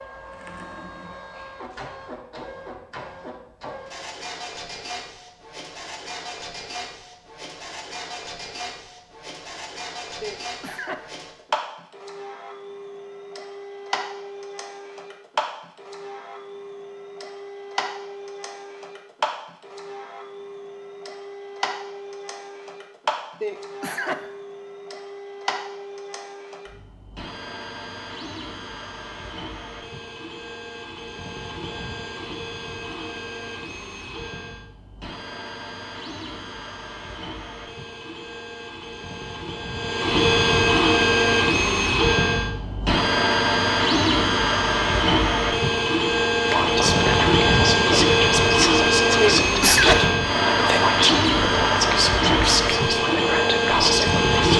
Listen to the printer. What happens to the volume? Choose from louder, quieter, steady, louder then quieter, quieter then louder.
louder.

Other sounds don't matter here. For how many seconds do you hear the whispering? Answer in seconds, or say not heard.
8 s.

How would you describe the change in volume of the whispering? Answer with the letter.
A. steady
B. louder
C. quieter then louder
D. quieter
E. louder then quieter
A.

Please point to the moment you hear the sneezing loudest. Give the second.
50 s.